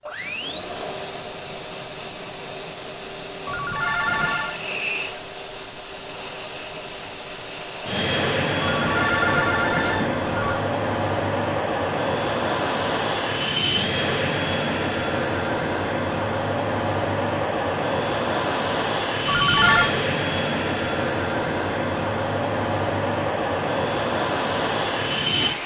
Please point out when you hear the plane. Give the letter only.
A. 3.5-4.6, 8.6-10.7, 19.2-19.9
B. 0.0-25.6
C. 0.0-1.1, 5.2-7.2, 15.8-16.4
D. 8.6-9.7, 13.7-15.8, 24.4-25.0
B.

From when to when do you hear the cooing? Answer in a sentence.
The cooing can't be heard in this clip.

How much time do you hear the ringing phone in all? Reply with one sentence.
You can hear the ringing phone for 4 seconds altogether.